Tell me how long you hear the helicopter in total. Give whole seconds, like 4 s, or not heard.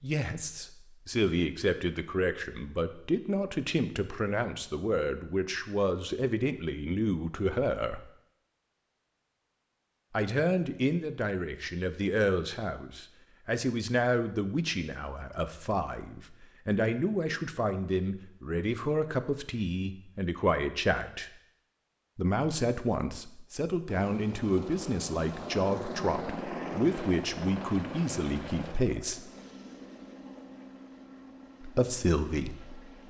9 s.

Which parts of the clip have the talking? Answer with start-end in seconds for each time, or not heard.
0.0-8.1, 10.1-21.3, 22.1-29.2, 31.6-32.9.